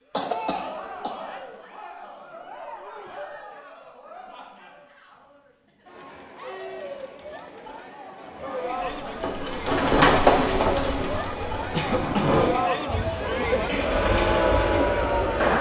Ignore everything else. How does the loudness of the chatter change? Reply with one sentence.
The volume of the chatter goes down, then up.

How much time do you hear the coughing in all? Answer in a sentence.
You can hear the coughing for 2 seconds altogether.